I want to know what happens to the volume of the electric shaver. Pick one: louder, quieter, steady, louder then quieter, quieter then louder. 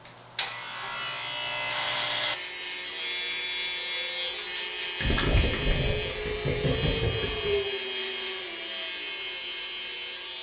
steady.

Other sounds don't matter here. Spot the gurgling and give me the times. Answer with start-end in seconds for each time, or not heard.
5.0-7.5.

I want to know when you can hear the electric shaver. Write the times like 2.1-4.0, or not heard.
0.0-10.3.